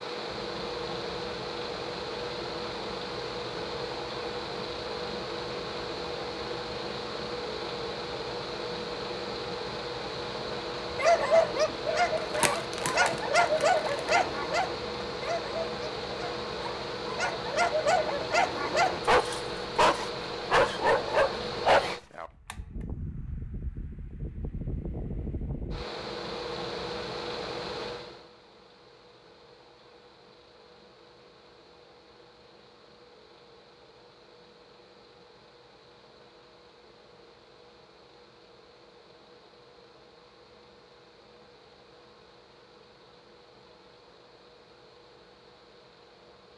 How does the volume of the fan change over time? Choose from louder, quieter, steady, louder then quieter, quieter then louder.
quieter.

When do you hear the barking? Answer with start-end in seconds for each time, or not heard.
10.9-22.3.